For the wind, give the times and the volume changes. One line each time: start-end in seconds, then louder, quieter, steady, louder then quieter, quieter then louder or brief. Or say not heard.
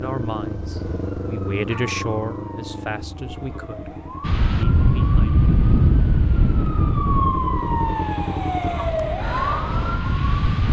4.2-10.6 quieter then louder.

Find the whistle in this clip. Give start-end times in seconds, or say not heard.
not heard.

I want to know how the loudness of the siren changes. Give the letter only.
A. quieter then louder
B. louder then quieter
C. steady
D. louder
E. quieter
D.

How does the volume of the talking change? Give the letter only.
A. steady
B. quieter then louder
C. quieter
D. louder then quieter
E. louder
D.